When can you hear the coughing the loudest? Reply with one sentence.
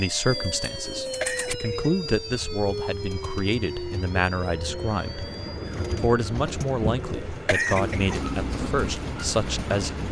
The loudest moment of the coughing is at 8 seconds.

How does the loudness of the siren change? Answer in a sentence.
The volume of the siren goes down.